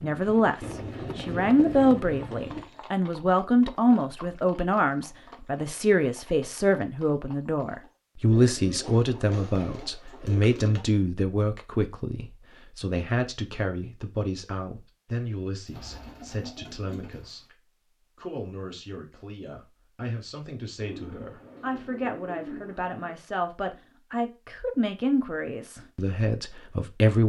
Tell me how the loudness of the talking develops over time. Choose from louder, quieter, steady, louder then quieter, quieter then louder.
quieter then louder.